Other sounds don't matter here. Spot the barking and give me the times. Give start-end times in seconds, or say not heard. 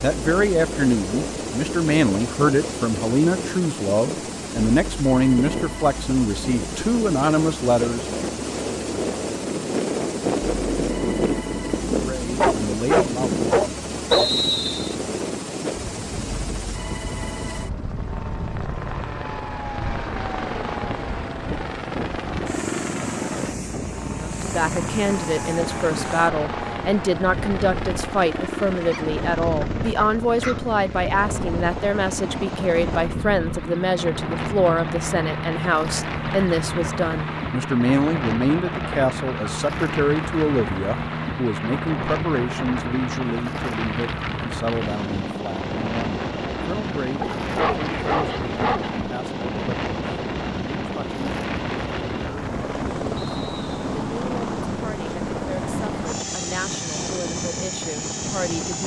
12.4-14.3, 28.9-30.8, 47.2-49.0.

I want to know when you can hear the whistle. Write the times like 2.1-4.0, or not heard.
14.1-14.9, 53.1-53.8.